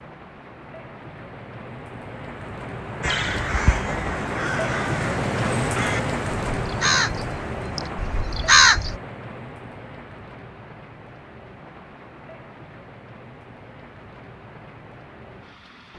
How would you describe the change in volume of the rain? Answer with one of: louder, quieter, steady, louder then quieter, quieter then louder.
louder then quieter.